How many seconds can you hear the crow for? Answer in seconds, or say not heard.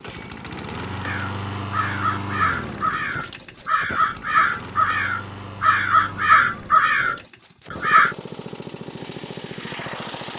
7 s.